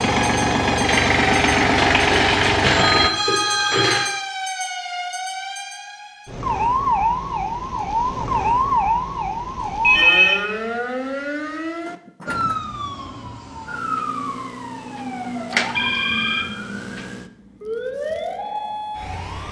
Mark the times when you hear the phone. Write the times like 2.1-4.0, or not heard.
1.8-4.2, 9.8-10.6, 15.8-16.5.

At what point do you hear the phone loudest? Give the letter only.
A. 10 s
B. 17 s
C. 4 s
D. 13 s
A.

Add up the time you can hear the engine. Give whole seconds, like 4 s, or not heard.
3 s.